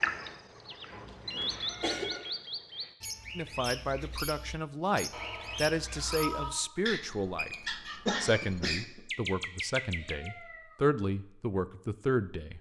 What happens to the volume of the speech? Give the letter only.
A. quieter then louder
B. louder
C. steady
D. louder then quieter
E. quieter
C.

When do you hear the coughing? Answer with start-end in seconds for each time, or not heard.
1.1-2.2, 8.1-9.0.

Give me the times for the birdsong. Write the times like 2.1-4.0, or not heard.
0.0-10.3.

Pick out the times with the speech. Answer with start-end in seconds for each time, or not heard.
3.4-7.5, 8.2-12.5.